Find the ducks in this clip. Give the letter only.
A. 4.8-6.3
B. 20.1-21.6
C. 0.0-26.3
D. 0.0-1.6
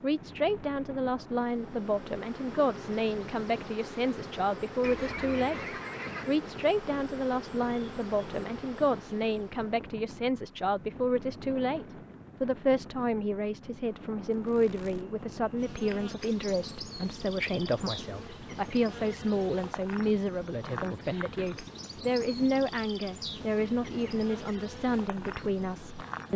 A.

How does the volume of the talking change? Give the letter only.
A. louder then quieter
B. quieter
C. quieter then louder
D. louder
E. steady
E.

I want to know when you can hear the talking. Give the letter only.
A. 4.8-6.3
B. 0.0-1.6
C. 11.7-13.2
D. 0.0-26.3
D.